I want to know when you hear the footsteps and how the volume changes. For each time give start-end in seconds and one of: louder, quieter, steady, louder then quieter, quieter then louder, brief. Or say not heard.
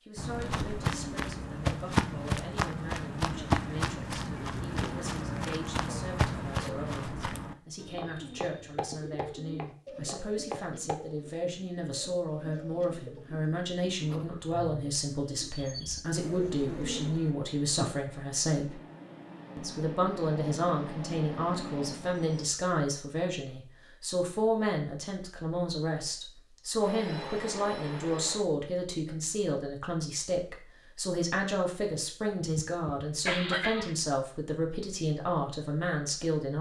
0.1-10.9 quieter.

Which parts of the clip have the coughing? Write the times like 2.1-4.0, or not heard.
32.3-34.0.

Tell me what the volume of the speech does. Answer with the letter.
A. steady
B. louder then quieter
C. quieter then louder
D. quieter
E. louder
E.